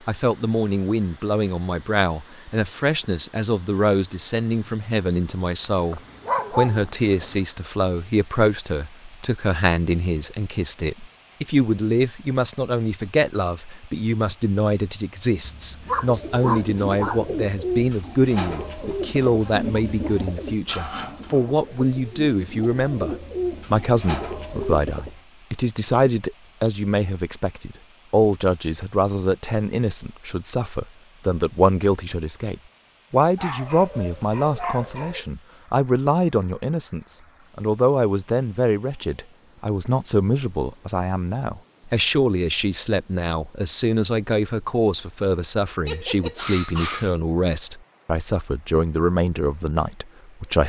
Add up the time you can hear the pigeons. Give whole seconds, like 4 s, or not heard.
9 s.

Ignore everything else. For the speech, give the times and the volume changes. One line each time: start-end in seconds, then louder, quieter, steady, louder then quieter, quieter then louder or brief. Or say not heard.
0.1-50.6 steady.